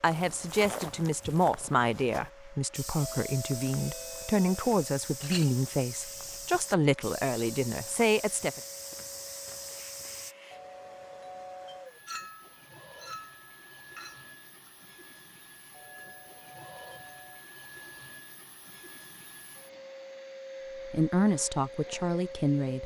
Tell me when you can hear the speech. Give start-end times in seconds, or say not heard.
0.0-8.6, 20.9-22.8.